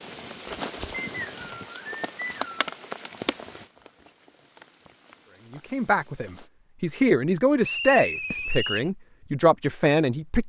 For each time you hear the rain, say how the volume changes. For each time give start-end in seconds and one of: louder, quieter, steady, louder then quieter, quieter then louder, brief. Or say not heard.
0.0-6.5 quieter.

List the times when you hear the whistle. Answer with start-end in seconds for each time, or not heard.
1.1-2.7, 7.6-8.9.